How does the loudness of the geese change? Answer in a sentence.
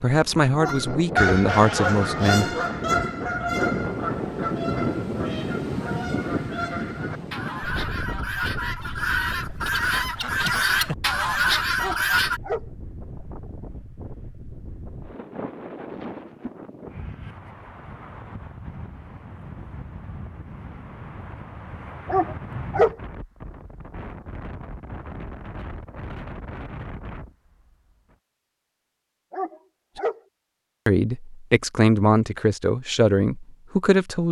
The loudness of the geese goes down, then up.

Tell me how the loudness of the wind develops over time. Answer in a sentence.
The volume of the wind goes down.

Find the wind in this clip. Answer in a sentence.
The wind can be heard from 0.1 to 28.1 s.